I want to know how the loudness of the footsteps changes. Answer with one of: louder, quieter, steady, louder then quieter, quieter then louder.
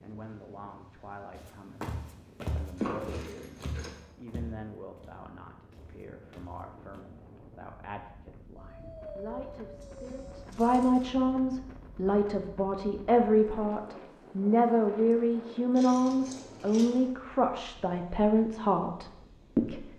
quieter.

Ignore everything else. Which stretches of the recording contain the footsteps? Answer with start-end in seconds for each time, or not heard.
1.3-7.0.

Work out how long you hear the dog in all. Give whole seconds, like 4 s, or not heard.
2 s.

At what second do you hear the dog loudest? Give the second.
9 s.